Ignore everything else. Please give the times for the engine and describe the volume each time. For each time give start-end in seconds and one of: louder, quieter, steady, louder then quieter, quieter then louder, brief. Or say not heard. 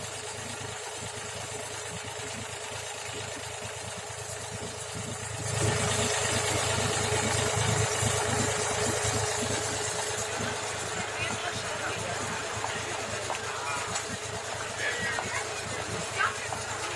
0.0-16.9 louder then quieter.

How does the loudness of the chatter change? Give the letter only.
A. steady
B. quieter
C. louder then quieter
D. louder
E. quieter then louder
D.